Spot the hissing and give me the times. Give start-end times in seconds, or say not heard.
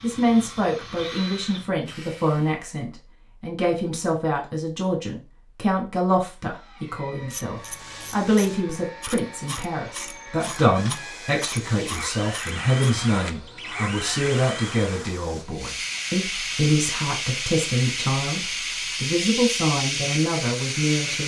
7.6-21.2.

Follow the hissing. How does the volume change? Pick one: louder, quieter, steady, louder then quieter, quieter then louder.
louder.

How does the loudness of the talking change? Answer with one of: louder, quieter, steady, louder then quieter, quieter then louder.
steady.